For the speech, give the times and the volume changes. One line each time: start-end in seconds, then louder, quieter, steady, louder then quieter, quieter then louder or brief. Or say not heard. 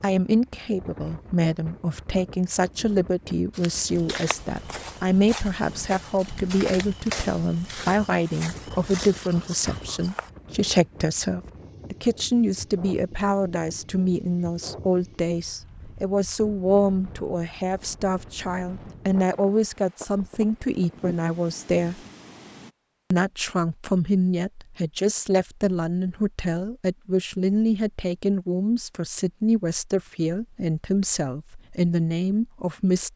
0.0-22.0 steady
23.1-33.1 steady.